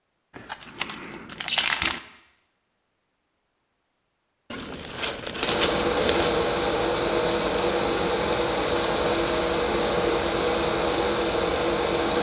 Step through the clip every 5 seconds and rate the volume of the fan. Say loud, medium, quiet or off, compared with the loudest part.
off, loud, loud.